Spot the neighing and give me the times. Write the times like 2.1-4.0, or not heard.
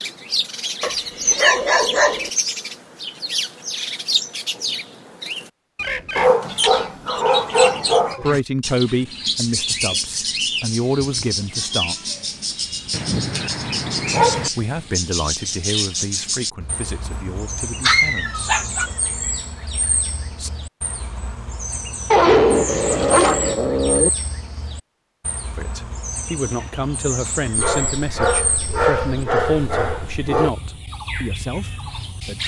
not heard.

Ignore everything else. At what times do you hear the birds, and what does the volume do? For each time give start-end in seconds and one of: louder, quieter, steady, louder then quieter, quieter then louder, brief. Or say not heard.
0.0-32.4 quieter.